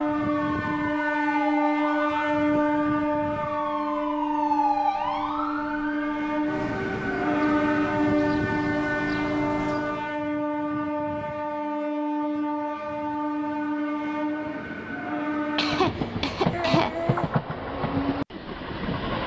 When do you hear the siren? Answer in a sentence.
The siren can be heard from 0.0 to 10.2 s.